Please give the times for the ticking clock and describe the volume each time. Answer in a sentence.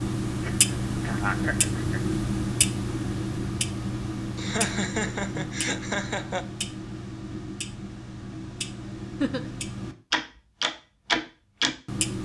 The ticking clock can be heard from 0.0 to 12.2 s, getting quieter then louder.